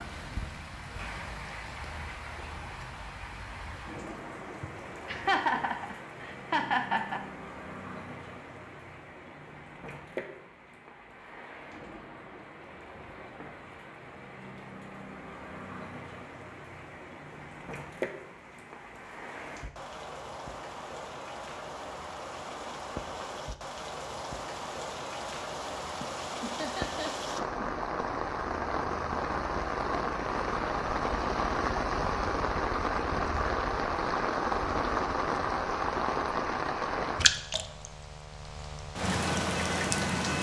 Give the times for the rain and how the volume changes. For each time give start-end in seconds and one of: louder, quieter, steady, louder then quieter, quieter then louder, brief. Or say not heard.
0.0-40.3 louder.